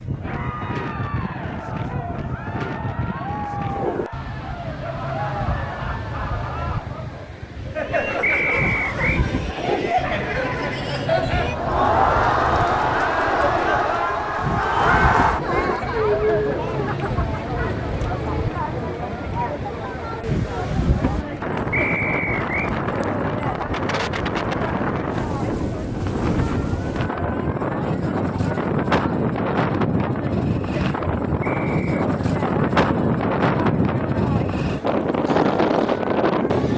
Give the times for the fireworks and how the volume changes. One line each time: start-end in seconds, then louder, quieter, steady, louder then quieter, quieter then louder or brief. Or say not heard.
not heard.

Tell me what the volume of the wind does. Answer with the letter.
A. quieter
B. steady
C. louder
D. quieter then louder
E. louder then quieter
C.